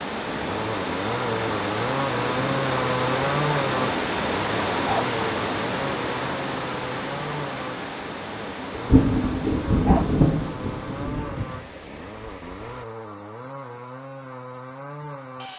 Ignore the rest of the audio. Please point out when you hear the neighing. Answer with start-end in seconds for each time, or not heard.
not heard.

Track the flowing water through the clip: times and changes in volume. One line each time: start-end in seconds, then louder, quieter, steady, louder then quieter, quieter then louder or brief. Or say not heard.
0.0-12.8 quieter.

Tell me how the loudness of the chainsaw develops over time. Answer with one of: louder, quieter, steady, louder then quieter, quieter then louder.
quieter.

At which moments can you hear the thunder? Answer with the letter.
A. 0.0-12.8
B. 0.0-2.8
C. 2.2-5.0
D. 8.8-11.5
D.